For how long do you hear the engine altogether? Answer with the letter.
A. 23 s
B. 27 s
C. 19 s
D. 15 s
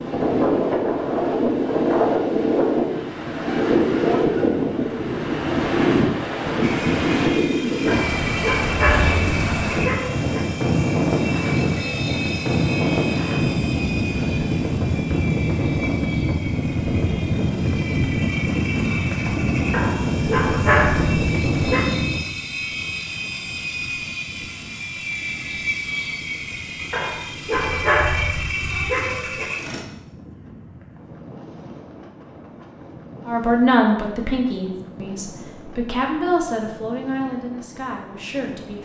A.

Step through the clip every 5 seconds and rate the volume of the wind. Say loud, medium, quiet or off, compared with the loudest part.
loud, loud, loud, loud, medium, quiet, quiet, quiet.